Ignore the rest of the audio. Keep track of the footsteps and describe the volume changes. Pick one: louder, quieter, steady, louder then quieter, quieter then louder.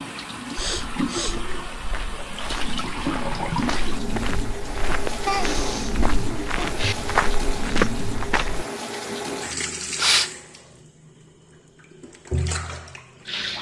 louder.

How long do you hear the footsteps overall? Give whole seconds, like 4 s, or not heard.
8 s.